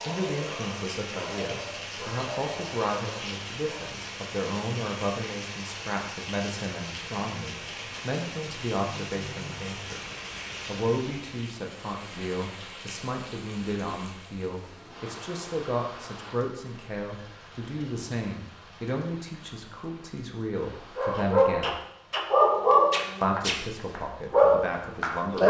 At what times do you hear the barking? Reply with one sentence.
The barking can be heard from 0.0 to 3.9 s and from 20.9 to 25.4 s.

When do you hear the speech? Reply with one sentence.
You can hear the speech from 0.1 to 10.0 s, from 10.7 to 21.8 s and from 23.2 to 25.4 s.